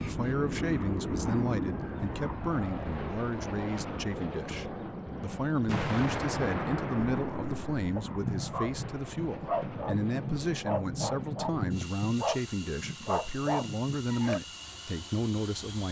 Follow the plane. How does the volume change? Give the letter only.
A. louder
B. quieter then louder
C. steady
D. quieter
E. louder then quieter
D.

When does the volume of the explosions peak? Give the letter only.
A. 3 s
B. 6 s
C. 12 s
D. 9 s
B.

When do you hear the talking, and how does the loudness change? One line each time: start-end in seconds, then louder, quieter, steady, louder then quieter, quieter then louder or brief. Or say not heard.
0.0-15.8 steady.